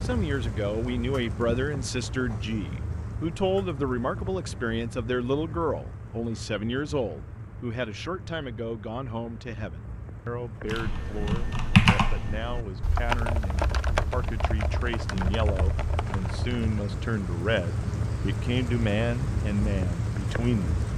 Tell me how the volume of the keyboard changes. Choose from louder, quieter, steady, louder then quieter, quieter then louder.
quieter.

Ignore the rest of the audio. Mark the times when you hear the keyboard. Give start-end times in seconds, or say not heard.
10.7-16.9.